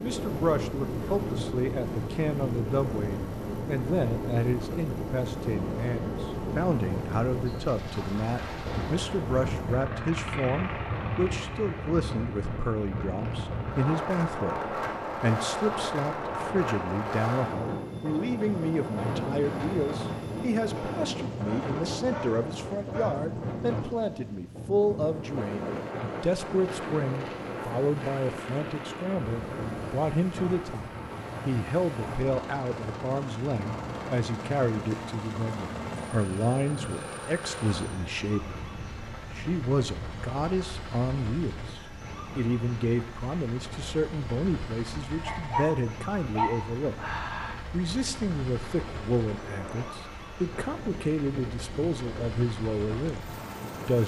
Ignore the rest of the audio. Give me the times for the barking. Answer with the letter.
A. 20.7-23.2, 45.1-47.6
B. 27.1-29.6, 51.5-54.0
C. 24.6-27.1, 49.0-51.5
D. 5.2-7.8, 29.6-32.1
A.